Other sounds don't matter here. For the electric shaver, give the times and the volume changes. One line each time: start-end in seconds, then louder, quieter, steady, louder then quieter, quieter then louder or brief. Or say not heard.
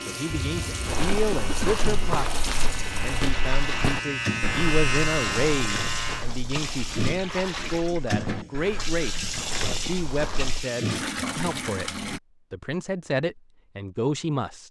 0.0-6.2 louder.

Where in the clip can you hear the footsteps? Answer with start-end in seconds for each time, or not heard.
0.8-10.7.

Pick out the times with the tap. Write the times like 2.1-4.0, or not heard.
0.0-12.2.